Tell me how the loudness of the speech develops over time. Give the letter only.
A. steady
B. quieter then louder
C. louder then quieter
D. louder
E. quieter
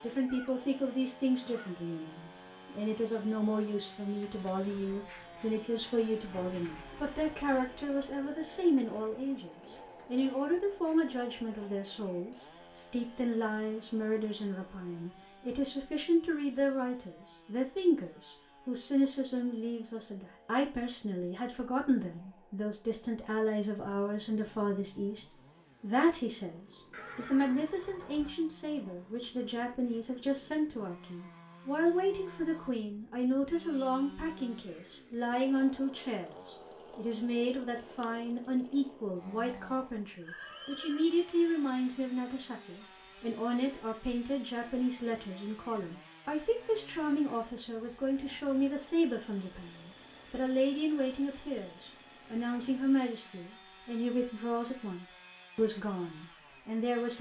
A.